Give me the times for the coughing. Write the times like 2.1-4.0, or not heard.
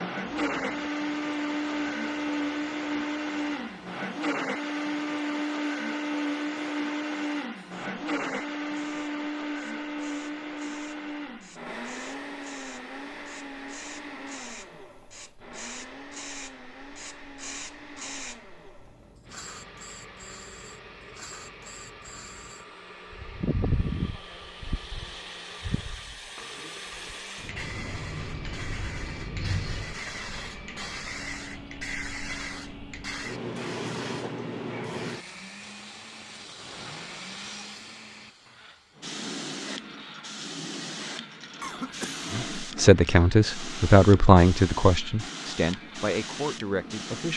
41.6-42.7.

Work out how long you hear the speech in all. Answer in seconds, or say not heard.
5 s.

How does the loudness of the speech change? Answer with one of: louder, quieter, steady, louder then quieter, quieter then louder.
quieter.